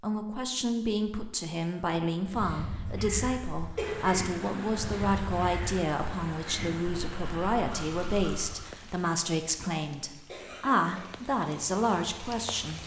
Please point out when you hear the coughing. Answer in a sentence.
The coughing can be heard from 3.8 to 4.3 s and from 10.2 to 11.2 s.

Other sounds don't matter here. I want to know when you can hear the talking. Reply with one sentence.
The talking can be heard from 0.0 to 12.8 s.